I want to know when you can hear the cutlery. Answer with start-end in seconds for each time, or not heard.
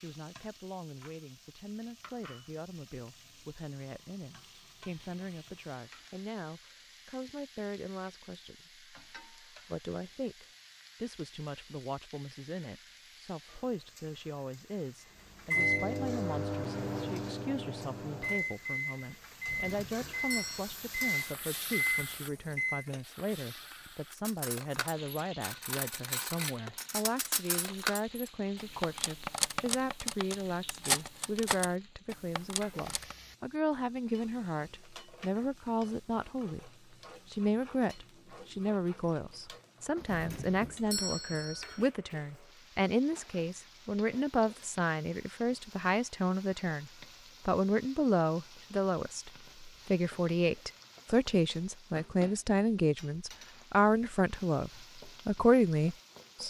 24.1-33.1.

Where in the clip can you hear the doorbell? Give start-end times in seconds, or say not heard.
19.4-20.8, 40.0-41.9.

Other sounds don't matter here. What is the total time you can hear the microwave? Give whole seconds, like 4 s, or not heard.
7 s.